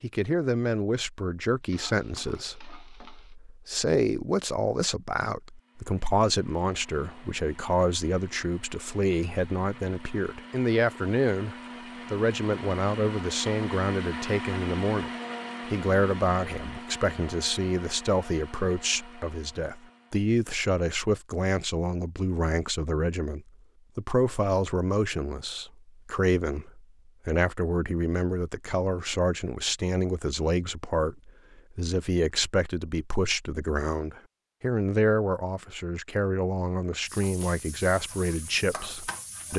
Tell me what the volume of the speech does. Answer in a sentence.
The volume of the speech stays about the same.